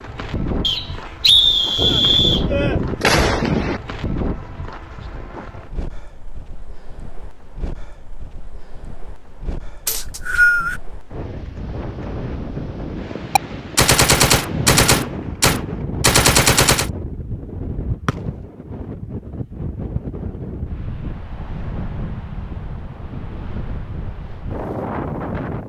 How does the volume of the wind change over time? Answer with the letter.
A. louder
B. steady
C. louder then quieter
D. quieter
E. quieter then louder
E.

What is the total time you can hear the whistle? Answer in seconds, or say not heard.
3 s.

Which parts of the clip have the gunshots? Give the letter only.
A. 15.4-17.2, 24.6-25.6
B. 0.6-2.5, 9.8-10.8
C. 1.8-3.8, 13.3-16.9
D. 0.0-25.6
C.